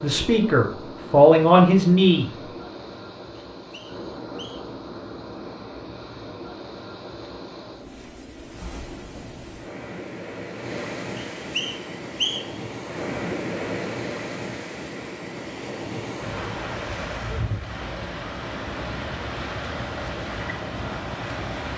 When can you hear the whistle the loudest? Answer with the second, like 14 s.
12 s.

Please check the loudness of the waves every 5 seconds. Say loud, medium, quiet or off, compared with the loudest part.
medium, medium, loud, loud, loud.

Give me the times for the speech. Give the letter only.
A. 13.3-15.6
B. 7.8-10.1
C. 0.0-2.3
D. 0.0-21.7
C.